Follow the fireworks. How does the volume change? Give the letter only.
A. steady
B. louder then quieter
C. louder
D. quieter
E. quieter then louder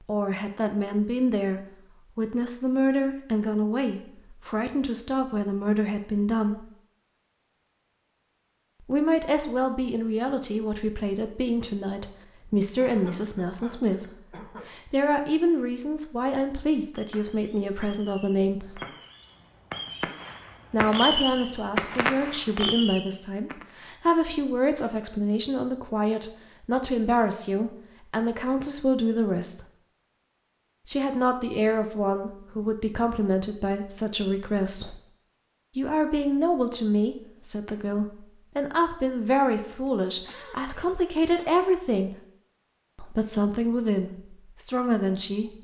C.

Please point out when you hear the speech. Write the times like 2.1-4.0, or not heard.
0.1-6.7, 8.8-18.8, 20.7-29.6, 30.9-35.0, 35.8-42.1, 43.0-45.5.